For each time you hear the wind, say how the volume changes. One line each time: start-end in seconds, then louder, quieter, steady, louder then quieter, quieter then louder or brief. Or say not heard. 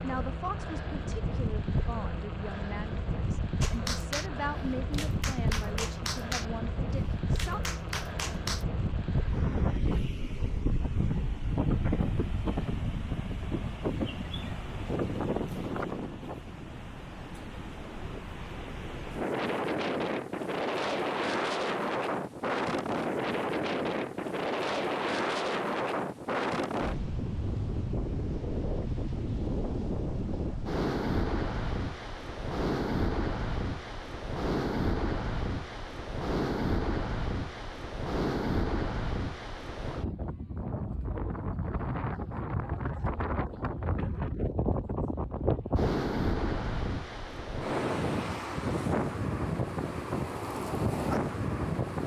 0.0-52.0 steady.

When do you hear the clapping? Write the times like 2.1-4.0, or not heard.
3.6-8.7.